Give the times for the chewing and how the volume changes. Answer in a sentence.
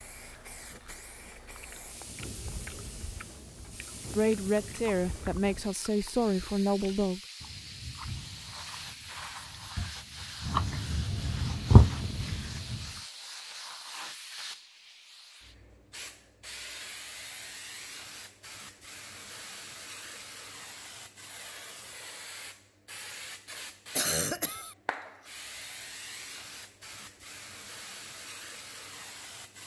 You can hear the chewing from 1.4 to 12.9 s, getting louder.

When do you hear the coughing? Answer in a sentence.
You can hear the coughing from 23.9 to 24.8 s.